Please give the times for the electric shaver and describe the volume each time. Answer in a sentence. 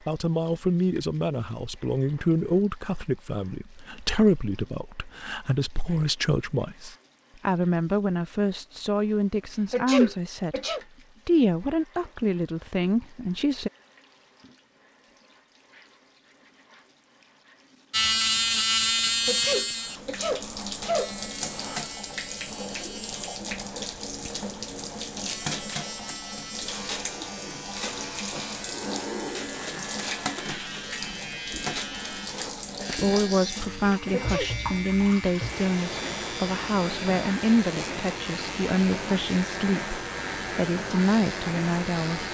The electric shaver can be heard from 17.9 to 42.2 s, getting quieter.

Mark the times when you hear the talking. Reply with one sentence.
You can hear the talking from 0.1 to 10.6 s, from 11.2 to 13.7 s and from 32.9 to 42.2 s.